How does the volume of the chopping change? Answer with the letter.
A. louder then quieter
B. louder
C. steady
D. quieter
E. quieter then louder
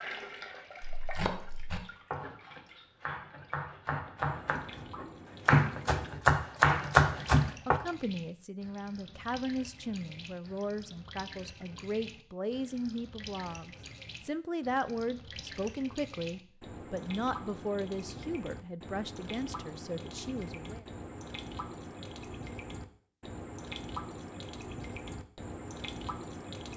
B.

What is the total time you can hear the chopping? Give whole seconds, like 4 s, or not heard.
7 s.